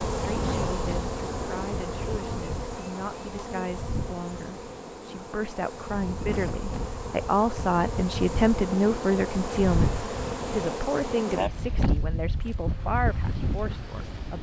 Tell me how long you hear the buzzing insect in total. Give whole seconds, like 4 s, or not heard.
14 s.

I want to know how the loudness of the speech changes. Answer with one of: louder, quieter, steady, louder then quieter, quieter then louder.
louder then quieter.